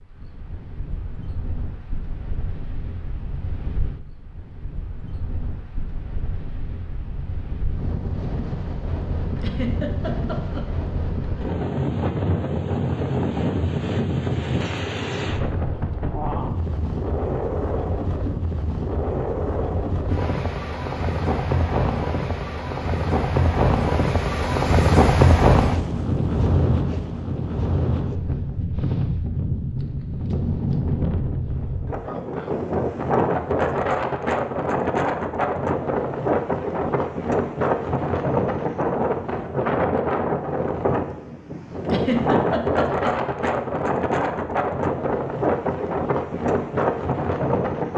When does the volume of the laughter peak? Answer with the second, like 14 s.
42 s.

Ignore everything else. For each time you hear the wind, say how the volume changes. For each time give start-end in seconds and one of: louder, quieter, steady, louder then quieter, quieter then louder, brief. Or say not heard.
0.0-47.9 louder.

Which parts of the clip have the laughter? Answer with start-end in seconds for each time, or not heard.
9.3-10.7, 41.9-43.1.